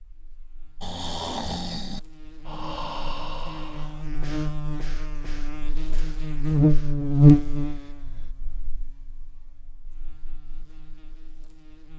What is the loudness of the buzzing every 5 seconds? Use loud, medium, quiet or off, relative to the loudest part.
quiet, loud, quiet.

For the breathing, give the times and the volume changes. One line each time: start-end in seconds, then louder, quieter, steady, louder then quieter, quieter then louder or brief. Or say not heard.
0.8-8.3 quieter.